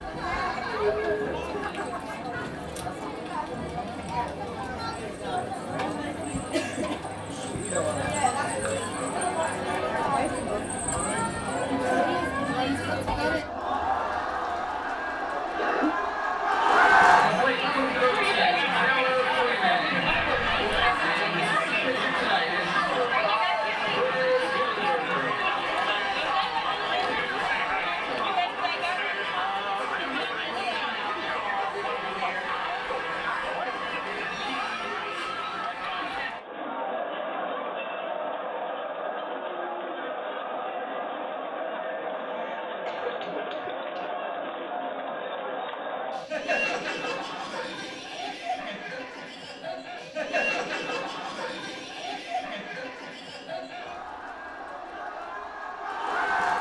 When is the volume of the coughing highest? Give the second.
16 s.